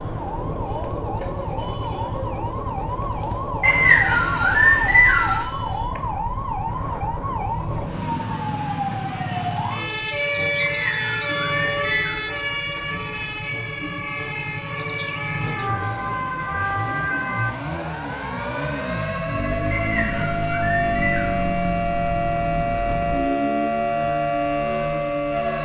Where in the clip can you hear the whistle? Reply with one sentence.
You can hear the whistle from 3.6 to 5.5 s, from 10.6 to 12.2 s and from 19.8 to 21.3 s.